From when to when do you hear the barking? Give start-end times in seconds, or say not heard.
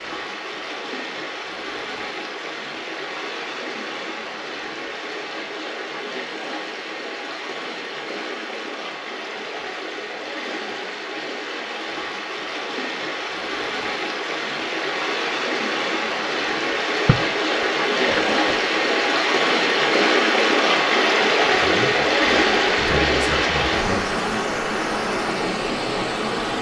not heard.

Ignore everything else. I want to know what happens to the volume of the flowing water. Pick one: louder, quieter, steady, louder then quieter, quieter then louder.
louder.